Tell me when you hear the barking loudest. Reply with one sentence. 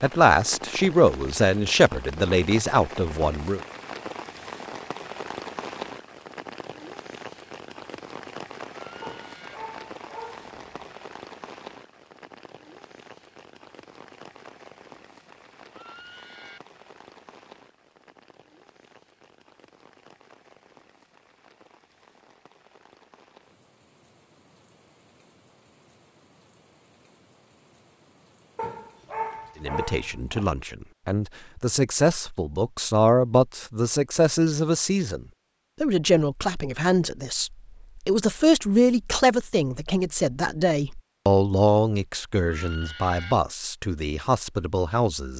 The volume of the barking peaks at 29 seconds.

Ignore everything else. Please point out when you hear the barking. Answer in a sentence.
The barking can be heard from 9.0 to 10.9 s and from 28.6 to 30.5 s.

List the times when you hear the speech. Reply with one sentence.
The speech can be heard from 0.0 to 3.6 s and from 29.6 to 45.3 s.